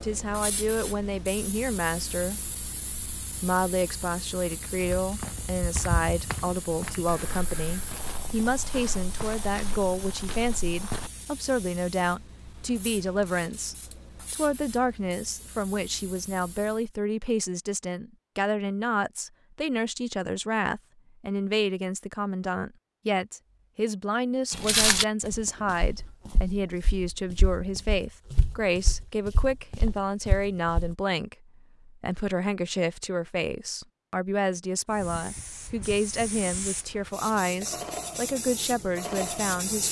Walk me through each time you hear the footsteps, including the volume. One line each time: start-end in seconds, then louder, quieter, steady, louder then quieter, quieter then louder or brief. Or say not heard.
4.8-11.1 quieter
24.5-30.9 quieter then louder.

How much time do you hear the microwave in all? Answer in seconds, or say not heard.
not heard.